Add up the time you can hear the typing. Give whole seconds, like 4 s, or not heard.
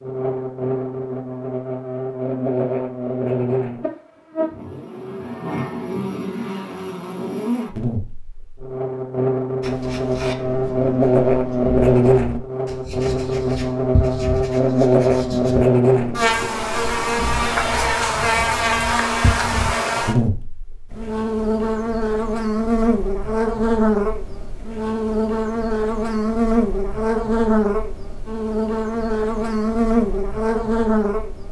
not heard.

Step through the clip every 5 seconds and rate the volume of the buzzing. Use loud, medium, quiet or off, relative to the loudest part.
medium, medium, loud, loud, loud, loud, loud.